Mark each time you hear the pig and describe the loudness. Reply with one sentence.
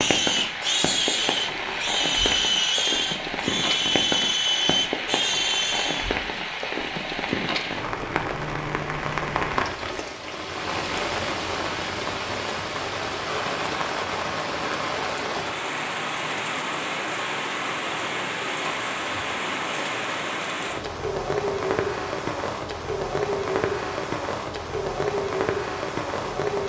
The pig can be heard from 0.0 to 6.2 s, at a steady volume.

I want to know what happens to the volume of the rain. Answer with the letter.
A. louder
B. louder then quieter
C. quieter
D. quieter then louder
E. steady
E.